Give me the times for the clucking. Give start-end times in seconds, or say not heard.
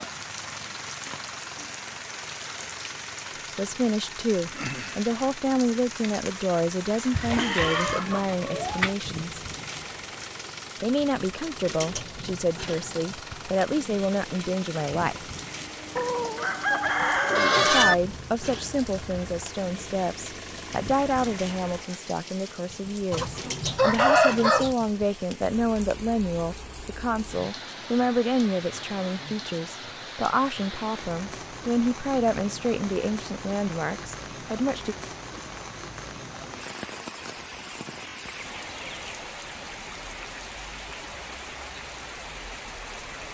7.1-8.9, 15.9-17.9, 23.1-24.8, 37.2-39.1.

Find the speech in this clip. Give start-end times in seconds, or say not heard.
3.5-9.4, 10.8-15.2, 17.6-35.0.